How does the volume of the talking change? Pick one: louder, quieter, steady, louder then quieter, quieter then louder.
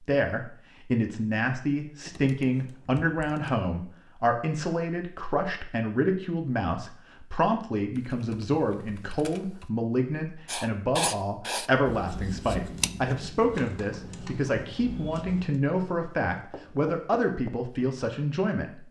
steady.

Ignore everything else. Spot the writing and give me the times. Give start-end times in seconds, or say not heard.
10.4-17.5.